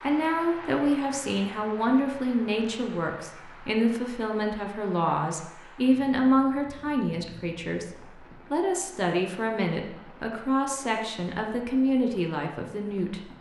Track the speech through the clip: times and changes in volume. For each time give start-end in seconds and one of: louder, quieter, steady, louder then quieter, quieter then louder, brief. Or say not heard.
0.0-13.3 steady.